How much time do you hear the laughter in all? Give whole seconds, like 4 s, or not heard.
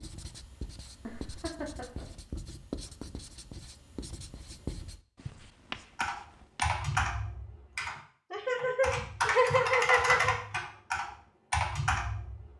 3 s.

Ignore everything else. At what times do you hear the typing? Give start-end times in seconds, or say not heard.
6.0-12.5.